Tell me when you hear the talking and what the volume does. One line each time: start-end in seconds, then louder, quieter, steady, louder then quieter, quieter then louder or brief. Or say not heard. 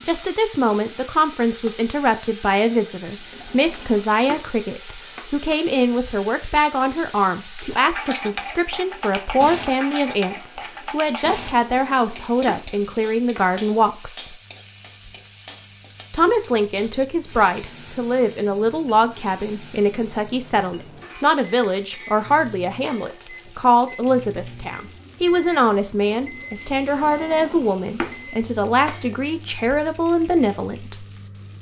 0.1-14.3 steady
16.1-31.1 steady.